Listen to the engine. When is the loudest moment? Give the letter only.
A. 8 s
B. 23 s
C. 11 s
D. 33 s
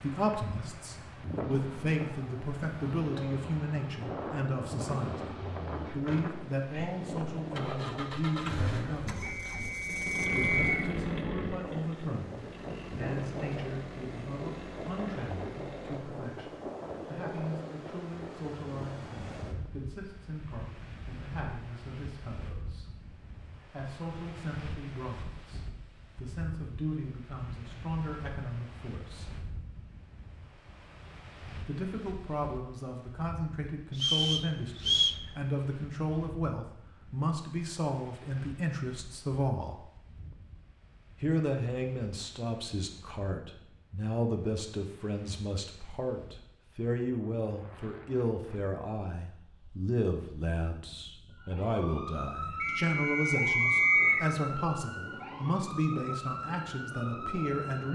C.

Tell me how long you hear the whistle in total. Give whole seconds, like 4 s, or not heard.
4 s.